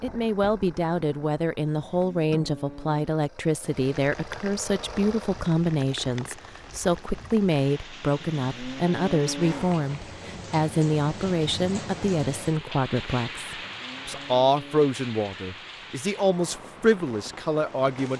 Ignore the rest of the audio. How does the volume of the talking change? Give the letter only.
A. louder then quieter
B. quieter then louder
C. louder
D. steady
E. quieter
D.